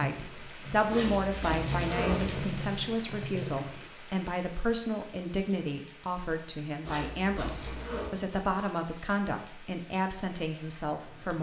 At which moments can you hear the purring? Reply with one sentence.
You can hear the purring from 0.0 to 4.0 s.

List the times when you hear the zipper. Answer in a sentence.
You can hear the zipper from 0.9 to 2.5 s and from 6.8 to 8.2 s.